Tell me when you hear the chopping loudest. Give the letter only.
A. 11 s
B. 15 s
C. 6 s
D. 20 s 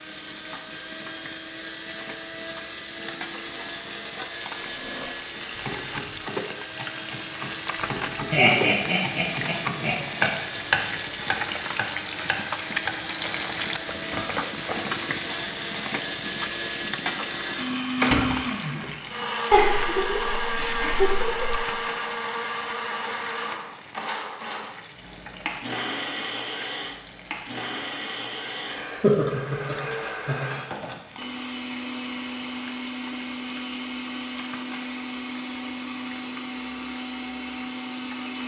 A.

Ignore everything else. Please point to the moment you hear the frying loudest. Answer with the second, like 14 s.
13 s.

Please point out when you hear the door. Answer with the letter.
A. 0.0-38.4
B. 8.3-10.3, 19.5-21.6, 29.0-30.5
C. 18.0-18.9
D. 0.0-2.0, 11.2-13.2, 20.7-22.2
C.